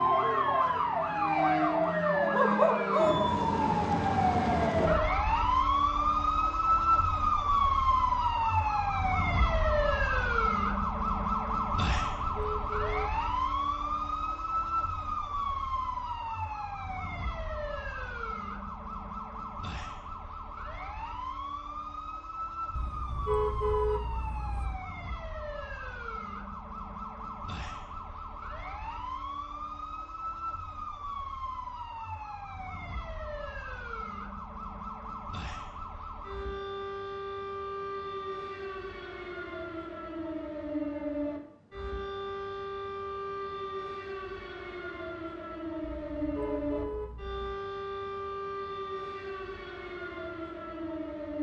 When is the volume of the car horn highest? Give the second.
24 s.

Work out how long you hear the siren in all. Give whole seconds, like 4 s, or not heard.
51 s.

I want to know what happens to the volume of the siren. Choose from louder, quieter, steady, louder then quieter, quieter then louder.
quieter.